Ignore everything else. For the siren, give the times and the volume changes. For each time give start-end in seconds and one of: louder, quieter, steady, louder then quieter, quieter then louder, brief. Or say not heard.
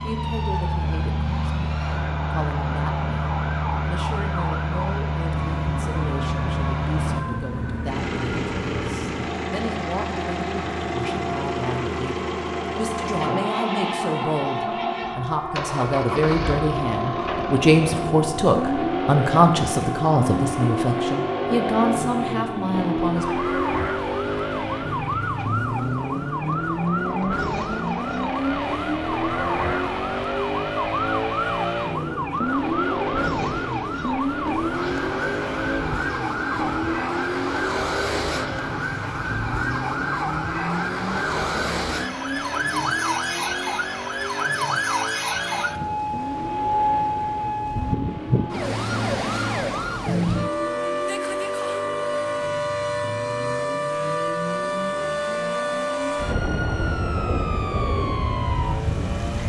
0.0-59.4 louder.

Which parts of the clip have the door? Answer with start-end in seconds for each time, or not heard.
not heard.